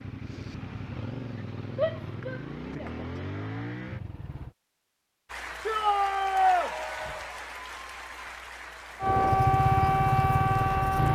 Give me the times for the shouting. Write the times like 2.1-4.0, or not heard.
1.8-2.9, 5.7-6.7.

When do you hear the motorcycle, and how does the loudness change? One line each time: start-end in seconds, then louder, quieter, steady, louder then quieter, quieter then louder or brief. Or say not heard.
0.0-4.5 steady
9.0-11.0 brief.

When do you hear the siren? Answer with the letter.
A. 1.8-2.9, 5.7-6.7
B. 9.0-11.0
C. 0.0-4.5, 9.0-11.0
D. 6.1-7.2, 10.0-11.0
B.